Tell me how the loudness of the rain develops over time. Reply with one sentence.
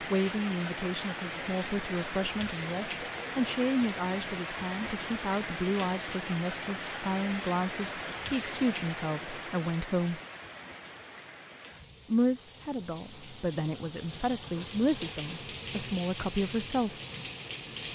The loudness of the rain goes down, then up.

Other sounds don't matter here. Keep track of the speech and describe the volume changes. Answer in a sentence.
The loudness of the speech stays about the same.